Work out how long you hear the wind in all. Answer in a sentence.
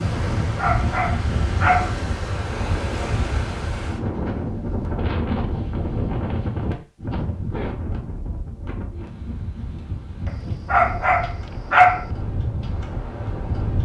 You can hear the wind for 14 seconds altogether.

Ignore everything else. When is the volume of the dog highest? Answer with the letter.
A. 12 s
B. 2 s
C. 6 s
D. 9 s
A.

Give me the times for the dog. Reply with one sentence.
You can hear the dog from 0.6 to 1.9 s and from 10.7 to 12.1 s.